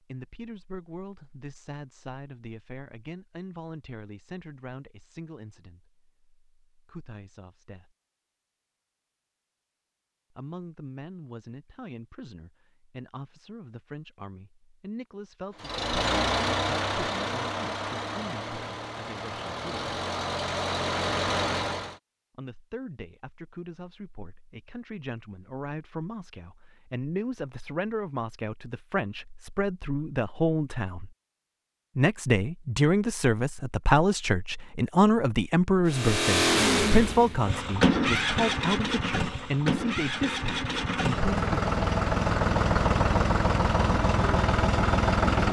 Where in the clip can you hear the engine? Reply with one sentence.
The engine can be heard from 15.6 to 21.9 s and from 35.9 to 45.4 s.